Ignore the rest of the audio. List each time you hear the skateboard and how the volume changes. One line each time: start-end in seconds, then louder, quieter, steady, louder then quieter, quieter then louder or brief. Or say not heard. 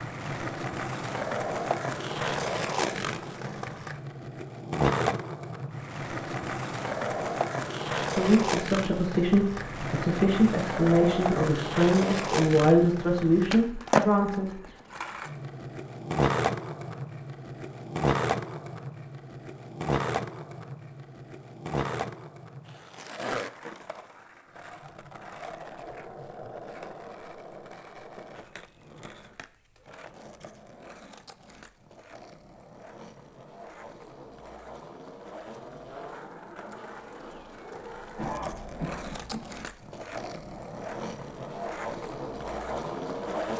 0.0-43.5 quieter then louder.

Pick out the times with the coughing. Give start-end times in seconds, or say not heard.
38.1-39.5.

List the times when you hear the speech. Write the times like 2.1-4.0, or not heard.
8.2-14.6.